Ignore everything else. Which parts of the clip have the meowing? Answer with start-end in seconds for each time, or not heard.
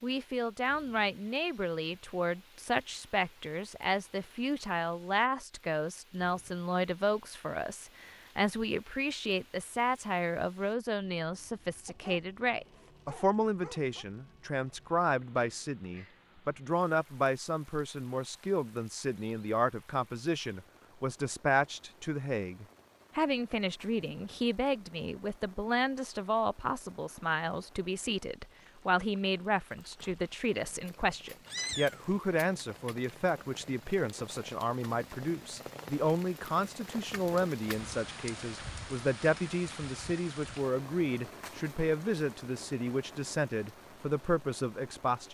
31.4-32.2.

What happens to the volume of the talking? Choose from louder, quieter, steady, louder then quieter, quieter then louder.
steady.